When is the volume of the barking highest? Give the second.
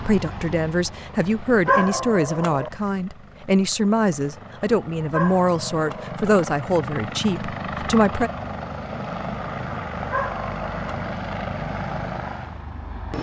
2 s.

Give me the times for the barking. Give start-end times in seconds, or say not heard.
1.6-2.7, 5.1-6.2, 10.1-11.2.